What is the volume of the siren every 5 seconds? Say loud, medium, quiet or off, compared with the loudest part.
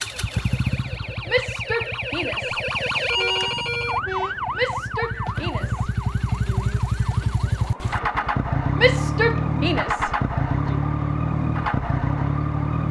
loud, medium, medium.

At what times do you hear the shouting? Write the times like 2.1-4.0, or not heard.
1.2-2.6, 4.5-6.8, 8.8-10.8.